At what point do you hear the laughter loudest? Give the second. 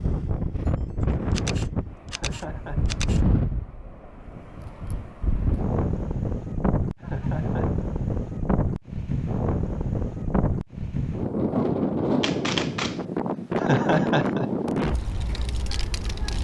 14 s.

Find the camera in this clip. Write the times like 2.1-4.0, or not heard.
1.3-3.2, 12.2-13.1.